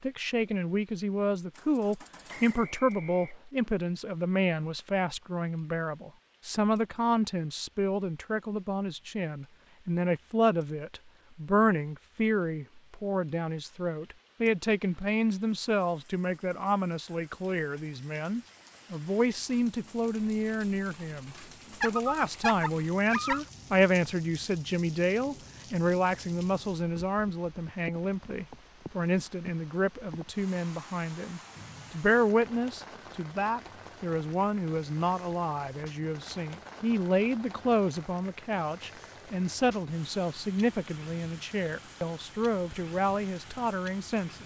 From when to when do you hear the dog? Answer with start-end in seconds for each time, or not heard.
21.8-23.4.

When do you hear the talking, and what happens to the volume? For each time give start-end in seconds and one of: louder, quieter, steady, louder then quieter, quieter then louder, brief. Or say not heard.
0.0-44.4 steady.